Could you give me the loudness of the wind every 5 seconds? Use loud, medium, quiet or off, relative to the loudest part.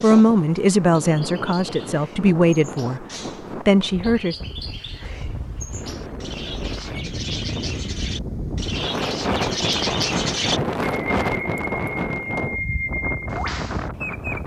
medium, loud, loud.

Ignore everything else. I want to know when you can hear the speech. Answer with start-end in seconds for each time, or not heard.
0.0-4.4.